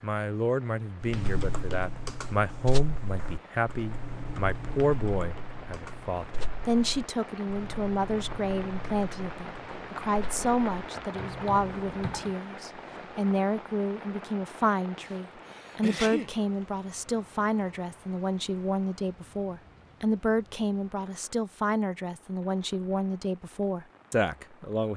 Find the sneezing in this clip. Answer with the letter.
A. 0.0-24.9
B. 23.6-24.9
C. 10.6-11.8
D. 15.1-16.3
D.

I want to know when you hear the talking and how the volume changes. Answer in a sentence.
The talking can be heard from 0.0 to 24.9 s, at a steady volume.